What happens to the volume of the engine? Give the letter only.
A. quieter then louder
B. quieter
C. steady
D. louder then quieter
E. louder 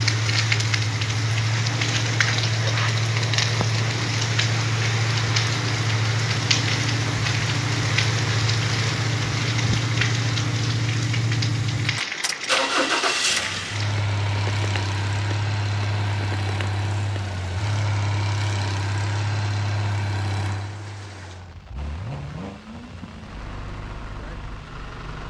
B.